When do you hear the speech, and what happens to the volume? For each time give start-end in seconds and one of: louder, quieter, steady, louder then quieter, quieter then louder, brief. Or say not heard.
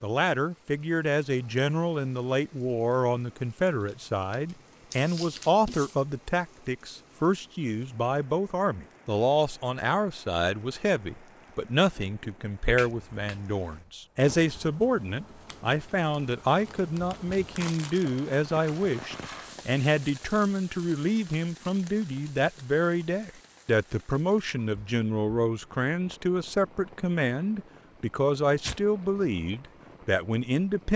0.0-30.9 steady.